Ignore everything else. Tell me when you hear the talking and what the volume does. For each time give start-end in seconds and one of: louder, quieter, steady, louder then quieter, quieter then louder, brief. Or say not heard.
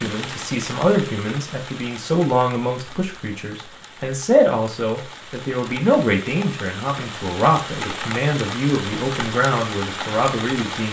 0.0-10.8 steady.